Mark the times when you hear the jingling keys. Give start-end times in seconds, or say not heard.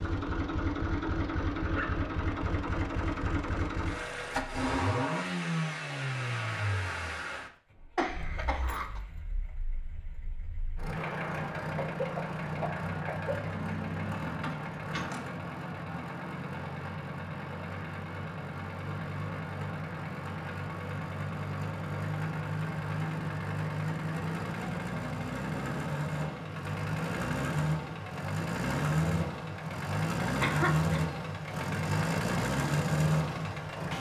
13.4-15.2.